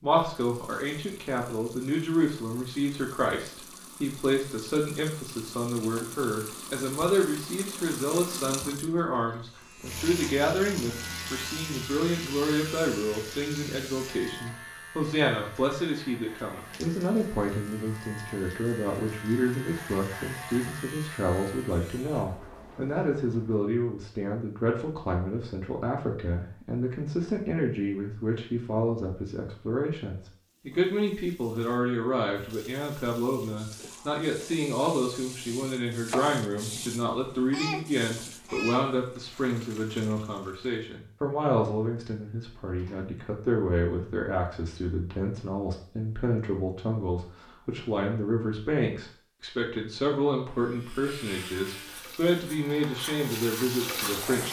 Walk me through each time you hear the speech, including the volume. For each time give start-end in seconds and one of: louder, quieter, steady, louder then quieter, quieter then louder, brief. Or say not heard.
0.0-54.4 steady.